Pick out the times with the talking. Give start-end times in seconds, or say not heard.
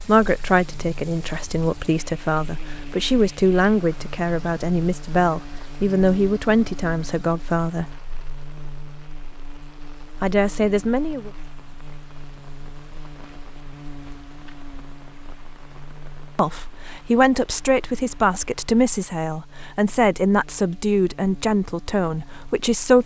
0.1-8.0, 10.2-11.3, 16.4-23.0.